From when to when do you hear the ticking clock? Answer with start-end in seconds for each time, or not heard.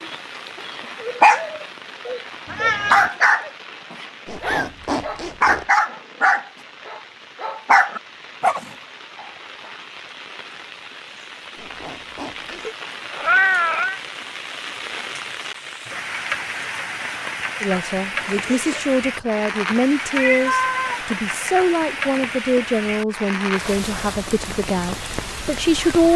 not heard.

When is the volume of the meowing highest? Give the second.
13 s.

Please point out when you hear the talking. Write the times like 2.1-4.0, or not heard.
17.6-26.1.